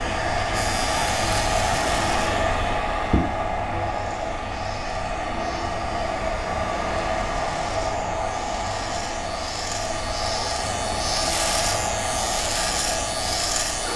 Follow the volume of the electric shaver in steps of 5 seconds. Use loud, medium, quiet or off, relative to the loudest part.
medium, medium, loud.